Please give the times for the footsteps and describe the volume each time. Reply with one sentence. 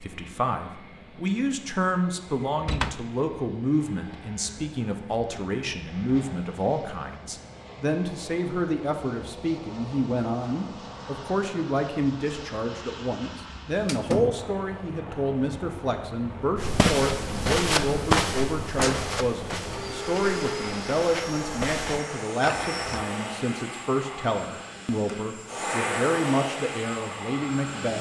The footsteps can be heard from 16.6 to 23.0 s, getting quieter then louder.